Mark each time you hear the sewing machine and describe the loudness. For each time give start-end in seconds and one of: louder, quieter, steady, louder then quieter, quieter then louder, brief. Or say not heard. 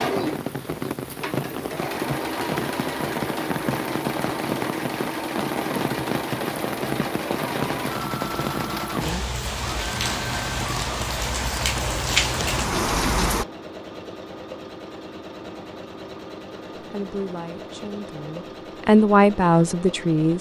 0.0-20.3 quieter.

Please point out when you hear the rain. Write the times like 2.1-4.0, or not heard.
0.0-13.4.